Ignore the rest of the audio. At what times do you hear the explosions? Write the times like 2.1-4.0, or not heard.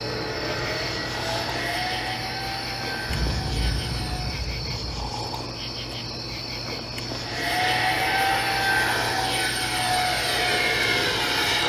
3.0-5.1.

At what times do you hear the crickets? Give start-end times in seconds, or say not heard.
0.0-11.6.